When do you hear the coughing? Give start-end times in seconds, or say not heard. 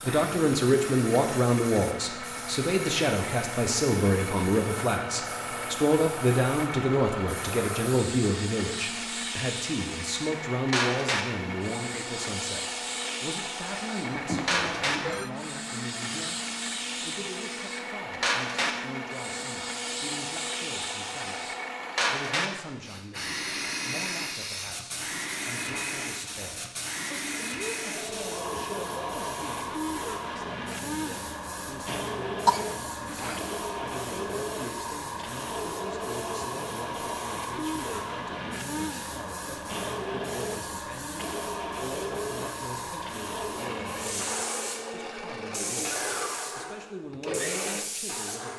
31.9-33.4.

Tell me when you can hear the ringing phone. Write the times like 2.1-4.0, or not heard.
14.1-15.3.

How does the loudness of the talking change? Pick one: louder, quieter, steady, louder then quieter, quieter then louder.
quieter.